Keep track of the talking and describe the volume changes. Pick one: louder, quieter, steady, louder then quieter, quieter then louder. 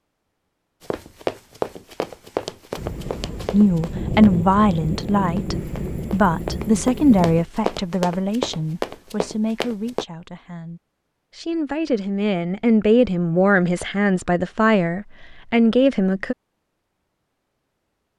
quieter then louder.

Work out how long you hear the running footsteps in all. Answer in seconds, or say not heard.
9 s.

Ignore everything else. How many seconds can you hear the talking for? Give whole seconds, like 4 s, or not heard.
13 s.